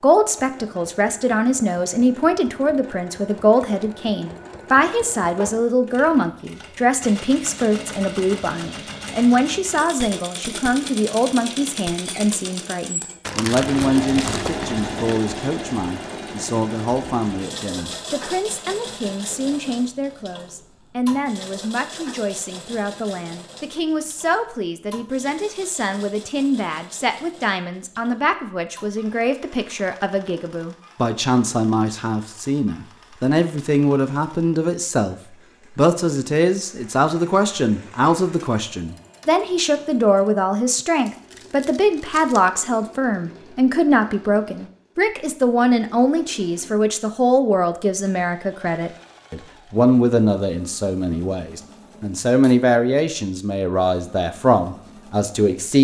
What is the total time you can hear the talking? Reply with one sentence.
The talking can be heard for 55 seconds in total.